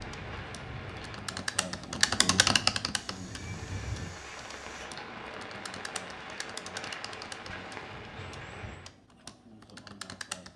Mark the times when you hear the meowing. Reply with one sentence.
The meowing can be heard from 3.0 to 4.9 s.